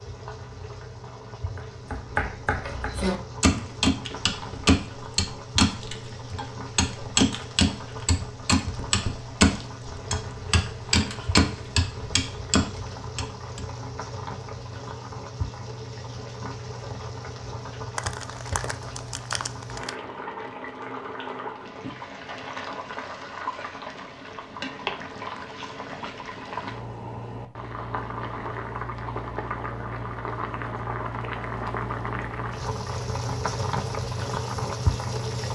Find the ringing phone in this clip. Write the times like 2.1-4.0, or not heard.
not heard.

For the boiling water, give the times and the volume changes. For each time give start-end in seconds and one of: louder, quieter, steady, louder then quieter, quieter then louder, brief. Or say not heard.
0.0-35.4 louder.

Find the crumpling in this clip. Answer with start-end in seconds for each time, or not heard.
17.9-19.9.